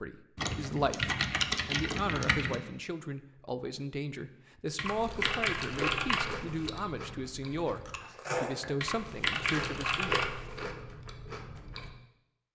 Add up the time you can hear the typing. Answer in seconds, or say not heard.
6 s.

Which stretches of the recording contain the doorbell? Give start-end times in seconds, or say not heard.
not heard.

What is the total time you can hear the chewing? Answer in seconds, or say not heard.
7 s.